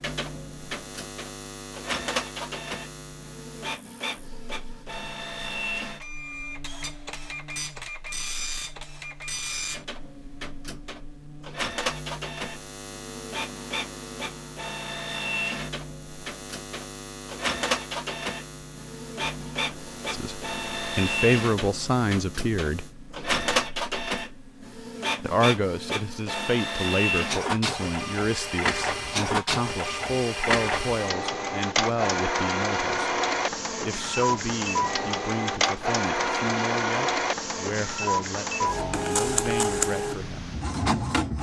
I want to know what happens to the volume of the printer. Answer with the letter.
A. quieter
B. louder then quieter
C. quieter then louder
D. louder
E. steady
D.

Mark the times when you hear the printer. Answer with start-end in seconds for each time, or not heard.
0.0-41.3.